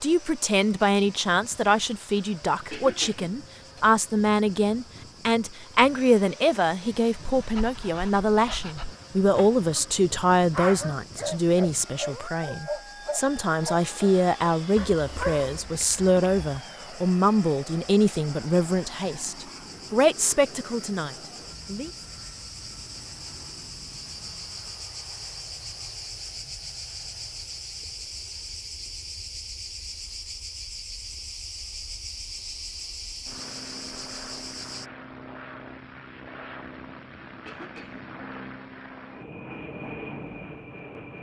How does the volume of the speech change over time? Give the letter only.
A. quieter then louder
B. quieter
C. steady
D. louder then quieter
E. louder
C.